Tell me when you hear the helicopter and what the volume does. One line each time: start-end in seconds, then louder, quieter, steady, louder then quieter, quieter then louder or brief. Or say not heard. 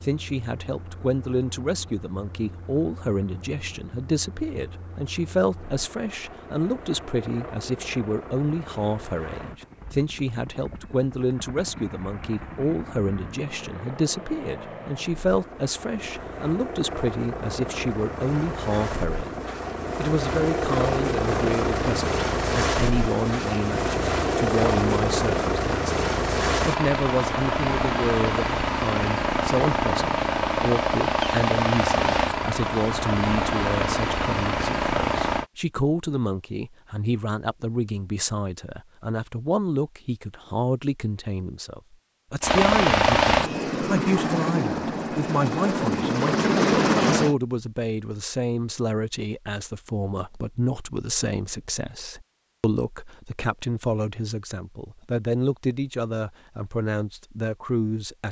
0.0-35.5 louder
42.4-47.4 quieter then louder.